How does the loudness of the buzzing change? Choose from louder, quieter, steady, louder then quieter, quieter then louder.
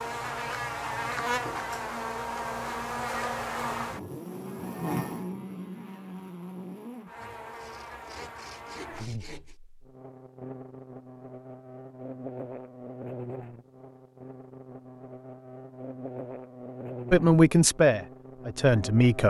quieter.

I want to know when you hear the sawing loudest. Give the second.
9 s.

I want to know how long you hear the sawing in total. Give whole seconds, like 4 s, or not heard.
2 s.